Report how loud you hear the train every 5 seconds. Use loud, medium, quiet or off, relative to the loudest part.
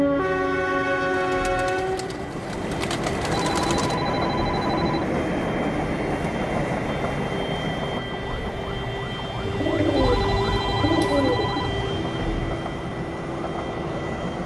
loud, loud, medium.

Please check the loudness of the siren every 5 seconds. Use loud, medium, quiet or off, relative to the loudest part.
medium, loud, loud.